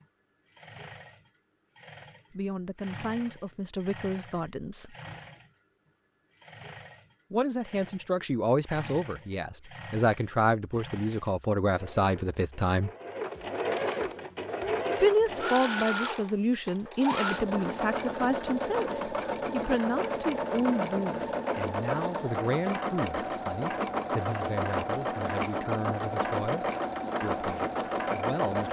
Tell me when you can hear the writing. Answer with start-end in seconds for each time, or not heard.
not heard.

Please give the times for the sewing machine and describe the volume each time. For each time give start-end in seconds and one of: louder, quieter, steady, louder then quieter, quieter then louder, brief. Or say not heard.
0.0-28.6 louder.